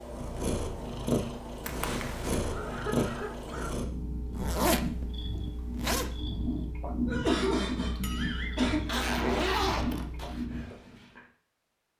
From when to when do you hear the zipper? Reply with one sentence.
You can hear the zipper from 1.6 to 2.4 s, from 4.3 to 6.1 s and from 8.8 to 10.4 s.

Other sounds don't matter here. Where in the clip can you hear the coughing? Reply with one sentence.
The coughing can be heard from 2.4 to 3.7 s and from 7.0 to 8.9 s.